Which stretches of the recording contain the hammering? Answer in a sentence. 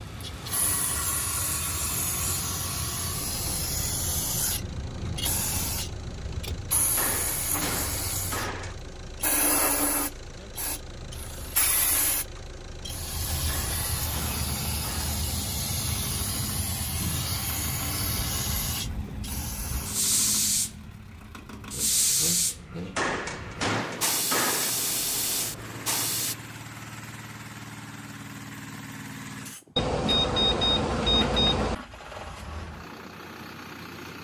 The hammering can be heard from 7.0 to 8.8 s, from 13.4 to 15.2 s and from 22.9 to 24.7 s.